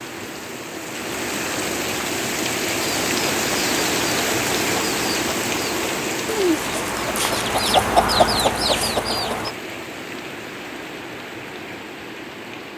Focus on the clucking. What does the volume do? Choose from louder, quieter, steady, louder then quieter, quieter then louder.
louder.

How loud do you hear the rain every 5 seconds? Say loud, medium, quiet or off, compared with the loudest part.
loud, loud, medium.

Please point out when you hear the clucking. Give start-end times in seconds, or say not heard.
2.8-9.6.